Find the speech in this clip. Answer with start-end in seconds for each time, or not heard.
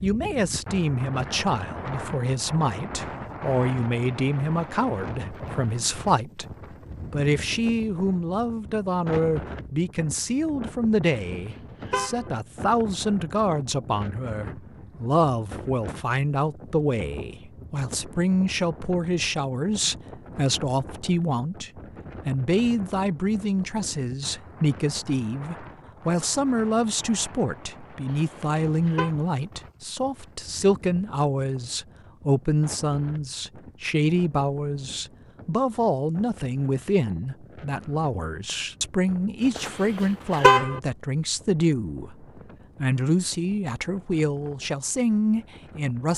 0.0-6.5, 7.1-46.1.